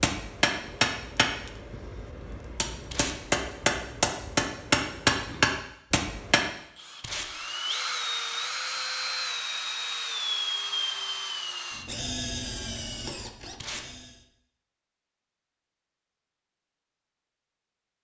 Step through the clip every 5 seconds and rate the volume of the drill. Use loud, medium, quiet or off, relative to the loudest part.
off, loud, loud, off.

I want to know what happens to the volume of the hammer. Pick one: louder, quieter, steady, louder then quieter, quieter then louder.
quieter then louder.